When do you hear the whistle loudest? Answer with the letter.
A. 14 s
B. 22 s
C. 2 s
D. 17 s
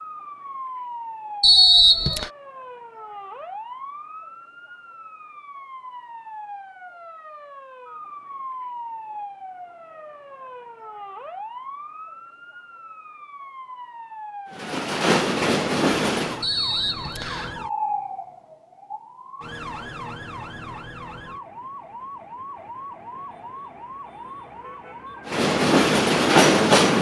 C.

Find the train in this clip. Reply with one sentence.
The train can be heard from 14.5 to 16.4 s and from 25.2 to 26.9 s.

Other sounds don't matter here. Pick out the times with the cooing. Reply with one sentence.
You can't hear the cooing here.